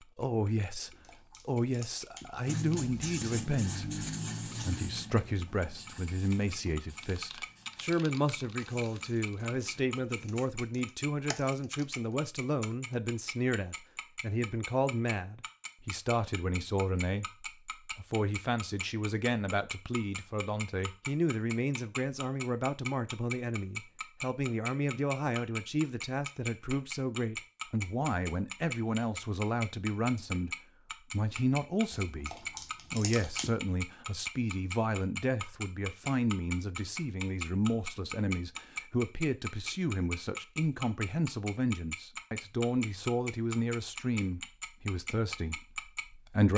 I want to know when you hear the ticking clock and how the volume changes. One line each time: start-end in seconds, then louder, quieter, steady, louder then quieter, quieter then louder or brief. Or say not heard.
0.0-46.5 louder.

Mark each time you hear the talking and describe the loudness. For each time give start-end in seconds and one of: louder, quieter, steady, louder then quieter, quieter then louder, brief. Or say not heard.
0.0-46.5 steady.